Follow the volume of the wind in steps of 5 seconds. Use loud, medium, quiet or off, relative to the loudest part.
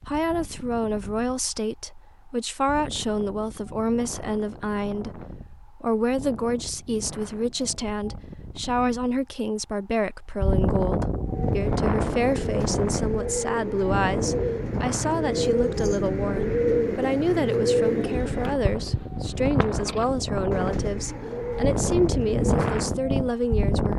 quiet, quiet, loud, medium, loud.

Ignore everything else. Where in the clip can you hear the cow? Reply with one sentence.
The cow can't be heard in this clip.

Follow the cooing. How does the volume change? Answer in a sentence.
The loudness of the cooing goes up, then down.